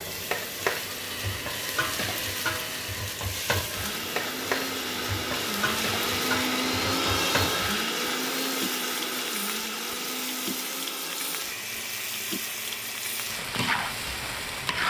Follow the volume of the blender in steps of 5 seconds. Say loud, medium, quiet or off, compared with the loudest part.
medium, loud, medium.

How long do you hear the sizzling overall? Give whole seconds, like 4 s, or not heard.
15 s.